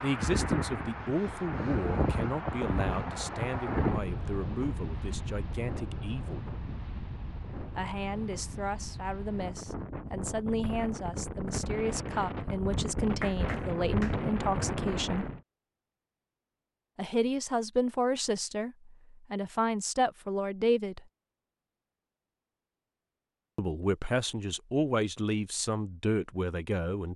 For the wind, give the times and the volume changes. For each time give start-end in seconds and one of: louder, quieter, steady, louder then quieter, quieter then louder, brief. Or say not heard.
0.0-15.4 quieter then louder.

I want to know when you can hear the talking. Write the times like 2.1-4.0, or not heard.
0.0-6.5, 7.8-15.2, 16.9-21.1, 23.6-27.1.